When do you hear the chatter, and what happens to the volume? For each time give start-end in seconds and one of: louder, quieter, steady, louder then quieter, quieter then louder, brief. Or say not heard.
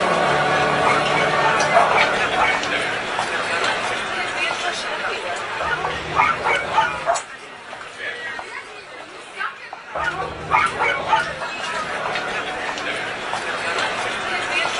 0.0-14.7 quieter then louder.